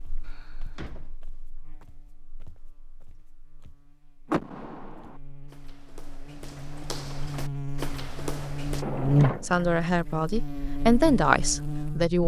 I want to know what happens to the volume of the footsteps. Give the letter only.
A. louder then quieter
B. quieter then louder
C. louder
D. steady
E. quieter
C.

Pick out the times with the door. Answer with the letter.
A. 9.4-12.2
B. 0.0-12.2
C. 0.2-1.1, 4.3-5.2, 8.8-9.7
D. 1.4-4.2
C.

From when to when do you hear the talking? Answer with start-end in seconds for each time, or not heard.
9.4-12.2.